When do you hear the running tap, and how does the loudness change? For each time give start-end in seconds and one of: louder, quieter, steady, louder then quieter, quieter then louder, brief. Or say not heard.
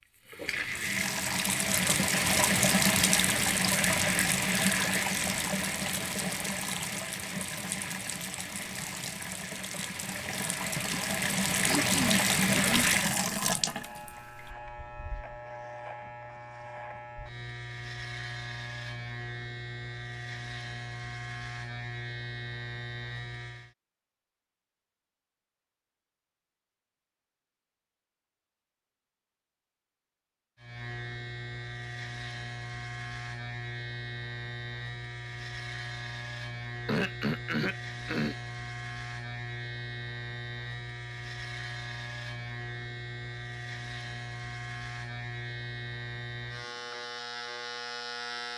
0.0-14.6 quieter then louder.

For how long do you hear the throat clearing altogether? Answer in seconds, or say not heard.
3 s.